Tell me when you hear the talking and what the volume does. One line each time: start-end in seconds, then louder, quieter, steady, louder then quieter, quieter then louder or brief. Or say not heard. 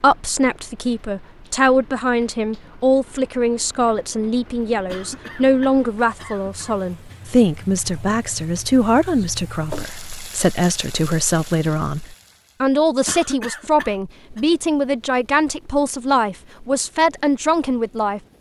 0.0-18.2 steady.